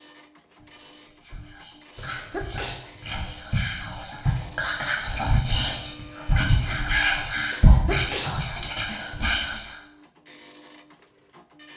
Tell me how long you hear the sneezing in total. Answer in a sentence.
You can hear the sneezing for 2 seconds altogether.